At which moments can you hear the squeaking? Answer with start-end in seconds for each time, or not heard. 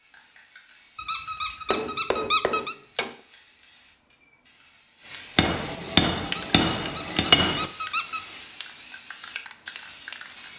0.9-2.8, 6.2-8.2.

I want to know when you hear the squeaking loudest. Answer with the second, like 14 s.
2 s.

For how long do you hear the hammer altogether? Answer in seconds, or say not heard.
4 s.